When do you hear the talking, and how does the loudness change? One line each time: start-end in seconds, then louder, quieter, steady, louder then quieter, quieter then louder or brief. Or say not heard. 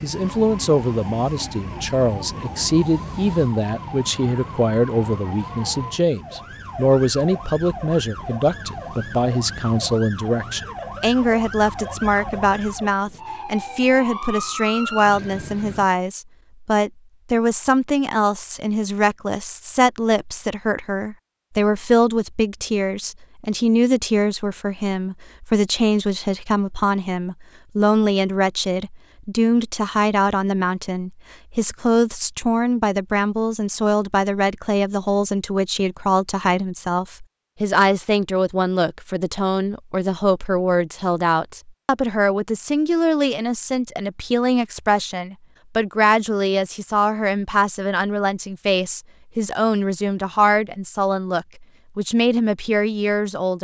0.0-53.6 steady.